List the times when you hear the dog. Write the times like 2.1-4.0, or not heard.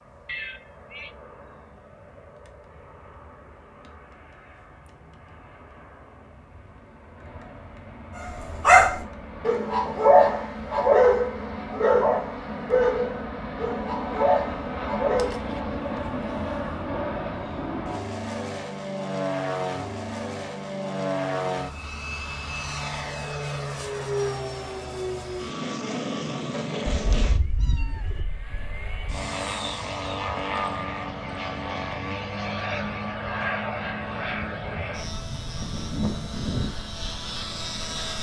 8.2-15.4.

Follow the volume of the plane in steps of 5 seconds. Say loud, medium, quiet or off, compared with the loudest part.
quiet, quiet, loud, loud, loud, loud, loud, loud.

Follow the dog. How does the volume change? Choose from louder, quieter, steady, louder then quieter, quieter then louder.
quieter.